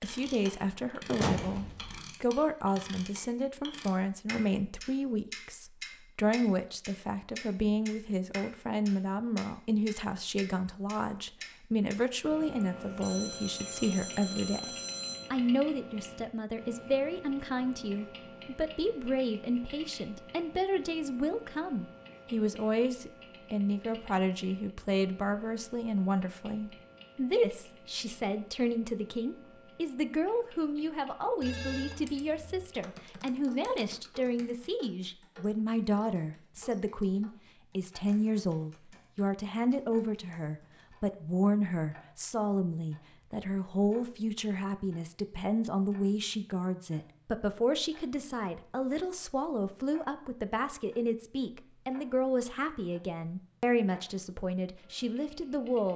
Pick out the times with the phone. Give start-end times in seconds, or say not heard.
12.6-15.3, 31.4-32.6.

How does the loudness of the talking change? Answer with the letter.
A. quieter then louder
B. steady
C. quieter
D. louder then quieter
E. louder
B.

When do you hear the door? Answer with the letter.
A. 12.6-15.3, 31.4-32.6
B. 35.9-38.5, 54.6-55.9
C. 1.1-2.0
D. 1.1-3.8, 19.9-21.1
C.